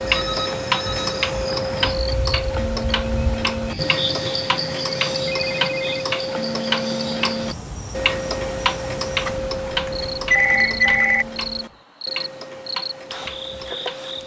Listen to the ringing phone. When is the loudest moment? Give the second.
10 s.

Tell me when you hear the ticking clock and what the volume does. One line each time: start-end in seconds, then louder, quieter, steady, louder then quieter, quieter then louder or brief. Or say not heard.
0.0-14.2 quieter.